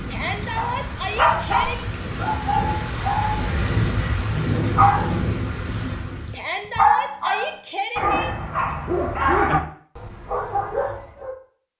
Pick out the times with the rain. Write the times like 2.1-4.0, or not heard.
0.0-6.5.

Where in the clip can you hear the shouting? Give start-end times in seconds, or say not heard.
0.1-1.8, 6.3-8.3.